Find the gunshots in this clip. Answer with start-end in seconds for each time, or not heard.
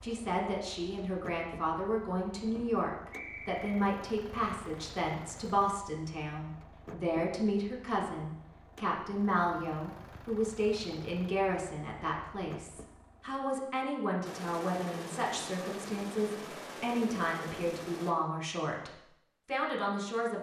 14.2-18.1.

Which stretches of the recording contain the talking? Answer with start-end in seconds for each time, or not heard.
0.0-20.3.